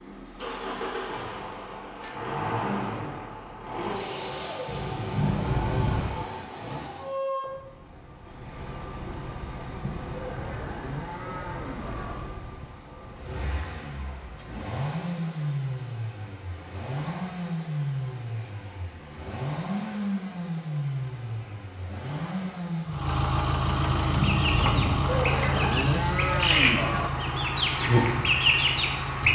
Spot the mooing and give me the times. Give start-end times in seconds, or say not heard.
10.1-12.2, 25.1-27.1.